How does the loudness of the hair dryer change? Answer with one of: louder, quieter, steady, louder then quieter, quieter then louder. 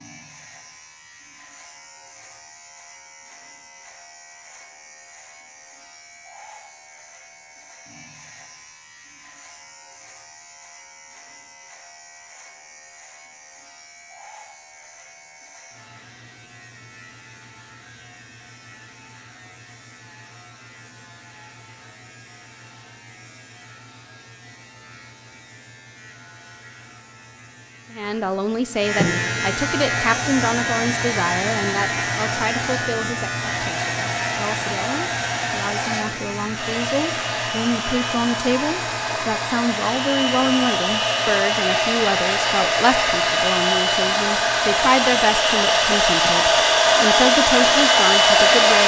louder.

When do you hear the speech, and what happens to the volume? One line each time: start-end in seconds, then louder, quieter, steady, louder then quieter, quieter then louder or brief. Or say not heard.
27.9-48.8 quieter then louder.